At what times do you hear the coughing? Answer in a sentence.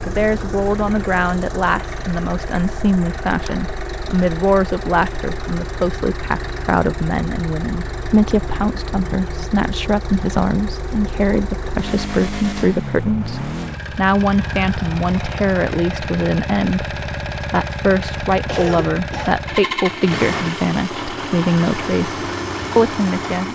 You can hear the coughing from 18.4 to 19.4 s.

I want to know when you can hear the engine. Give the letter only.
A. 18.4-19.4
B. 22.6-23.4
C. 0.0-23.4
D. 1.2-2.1
C.